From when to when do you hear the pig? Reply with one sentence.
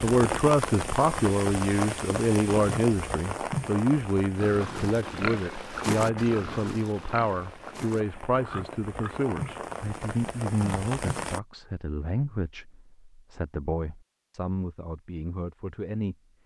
You can hear the pig from 4.3 to 9.6 s.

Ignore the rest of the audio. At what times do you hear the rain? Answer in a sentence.
The rain can be heard from 0.0 to 11.4 s.